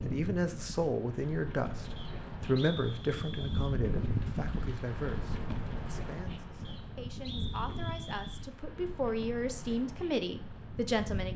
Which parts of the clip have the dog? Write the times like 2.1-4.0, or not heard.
not heard.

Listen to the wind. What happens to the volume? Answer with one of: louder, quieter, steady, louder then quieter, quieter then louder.
louder then quieter.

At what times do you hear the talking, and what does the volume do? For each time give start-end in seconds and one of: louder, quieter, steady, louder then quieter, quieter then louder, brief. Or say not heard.
0.1-11.3 quieter then louder.